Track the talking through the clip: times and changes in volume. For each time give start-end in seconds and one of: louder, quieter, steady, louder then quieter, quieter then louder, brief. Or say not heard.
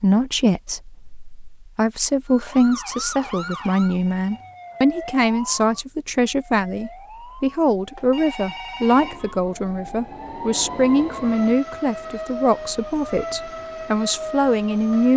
0.0-15.1 steady.